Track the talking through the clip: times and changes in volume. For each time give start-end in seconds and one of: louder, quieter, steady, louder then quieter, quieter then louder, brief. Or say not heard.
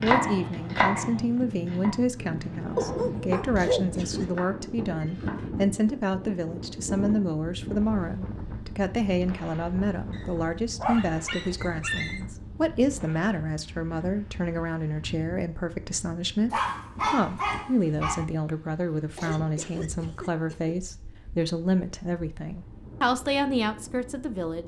0.0-24.6 steady.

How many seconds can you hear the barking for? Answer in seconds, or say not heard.
5 s.